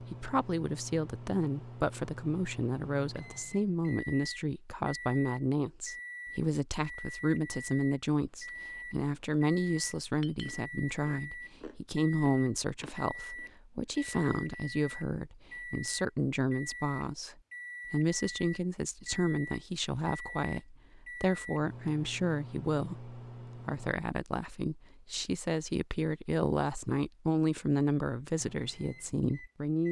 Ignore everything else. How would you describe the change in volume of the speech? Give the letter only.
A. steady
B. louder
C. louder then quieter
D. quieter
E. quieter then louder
A.